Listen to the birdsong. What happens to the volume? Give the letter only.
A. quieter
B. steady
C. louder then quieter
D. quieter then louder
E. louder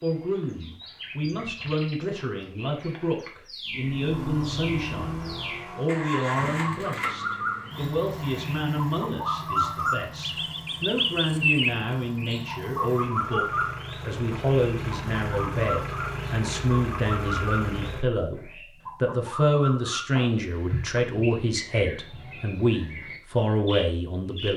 C.